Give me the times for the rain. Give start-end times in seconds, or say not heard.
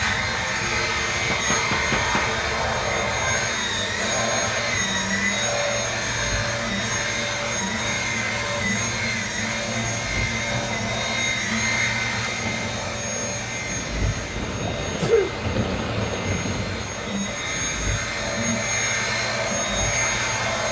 0.0-20.6.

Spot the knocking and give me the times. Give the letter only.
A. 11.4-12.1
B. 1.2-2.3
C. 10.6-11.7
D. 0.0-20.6
B.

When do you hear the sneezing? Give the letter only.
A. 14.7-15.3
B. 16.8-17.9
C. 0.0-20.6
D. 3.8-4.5
A.